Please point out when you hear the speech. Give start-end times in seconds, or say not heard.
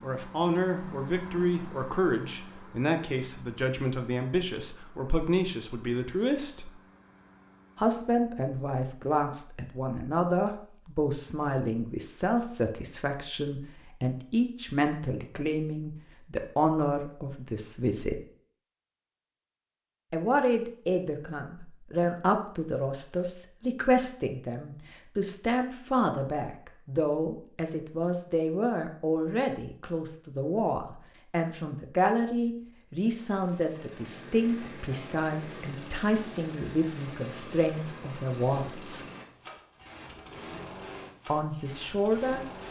0.0-6.7, 7.8-18.2, 20.1-39.0, 41.2-42.4.